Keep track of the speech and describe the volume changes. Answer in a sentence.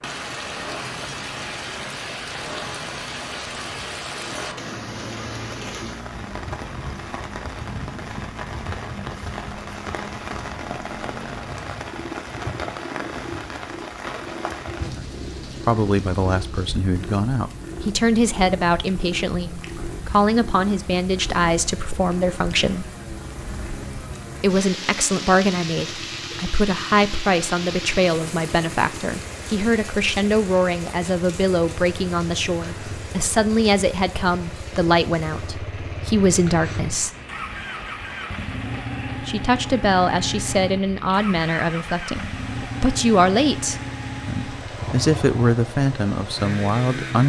The volume of the speech stays about the same.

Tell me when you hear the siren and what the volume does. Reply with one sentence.
The siren can't be heard in this clip.